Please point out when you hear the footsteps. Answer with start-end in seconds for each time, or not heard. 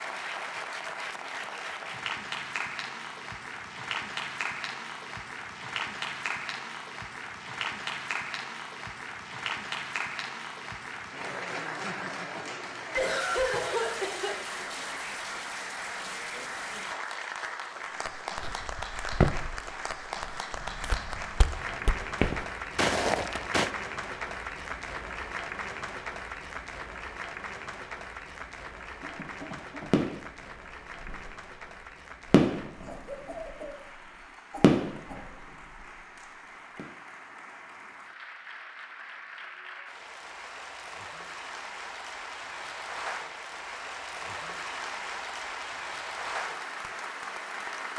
18.4-23.7.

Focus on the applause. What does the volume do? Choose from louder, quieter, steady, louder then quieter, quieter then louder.
quieter then louder.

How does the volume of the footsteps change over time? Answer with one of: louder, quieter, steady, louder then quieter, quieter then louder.
quieter then louder.